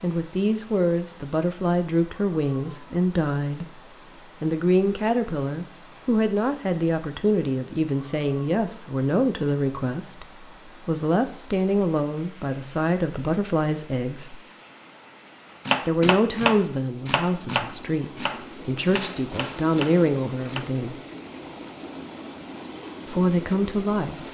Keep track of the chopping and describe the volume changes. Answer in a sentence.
The loudness of the chopping goes down.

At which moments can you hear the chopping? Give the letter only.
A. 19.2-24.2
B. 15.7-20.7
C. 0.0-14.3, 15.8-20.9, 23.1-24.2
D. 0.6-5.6
B.